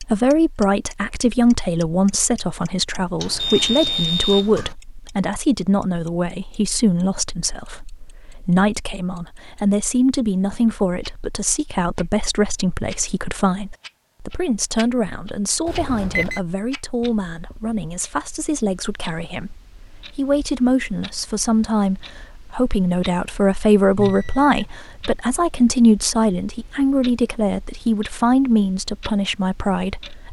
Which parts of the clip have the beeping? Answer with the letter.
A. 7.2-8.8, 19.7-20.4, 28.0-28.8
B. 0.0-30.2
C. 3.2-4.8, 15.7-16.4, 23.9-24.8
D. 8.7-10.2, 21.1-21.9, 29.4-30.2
C.